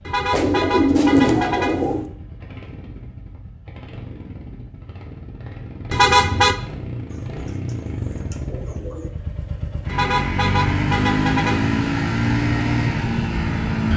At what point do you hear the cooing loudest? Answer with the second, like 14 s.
1 s.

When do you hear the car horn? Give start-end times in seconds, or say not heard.
0.1-2.0, 5.9-6.5, 9.8-11.8.